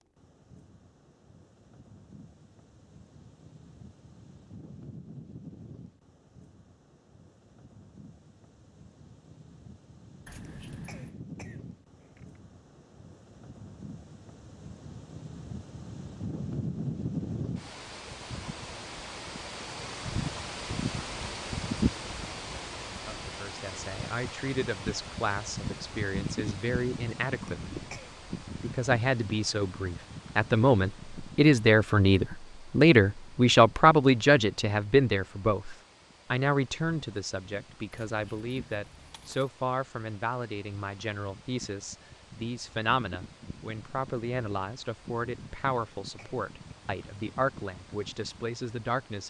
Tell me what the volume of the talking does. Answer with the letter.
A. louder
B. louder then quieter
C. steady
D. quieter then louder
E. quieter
B.